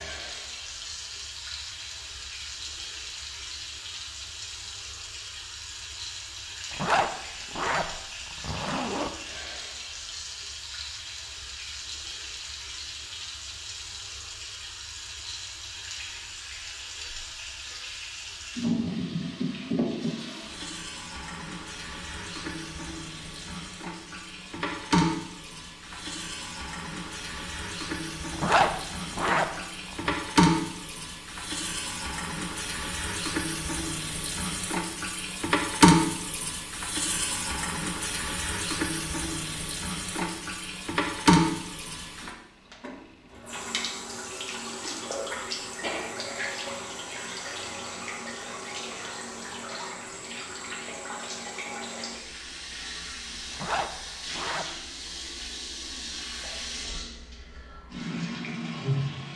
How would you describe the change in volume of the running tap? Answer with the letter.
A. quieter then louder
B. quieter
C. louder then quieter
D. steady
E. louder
C.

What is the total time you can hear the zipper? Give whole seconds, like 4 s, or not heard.
5 s.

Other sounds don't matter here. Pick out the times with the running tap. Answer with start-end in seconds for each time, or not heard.
0.0-59.3.